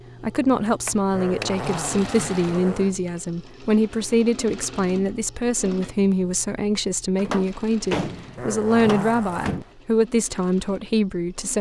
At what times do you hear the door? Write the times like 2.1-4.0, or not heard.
0.8-1.5, 7.2-9.7.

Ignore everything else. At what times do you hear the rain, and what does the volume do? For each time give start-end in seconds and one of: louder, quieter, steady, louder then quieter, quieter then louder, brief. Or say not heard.
not heard.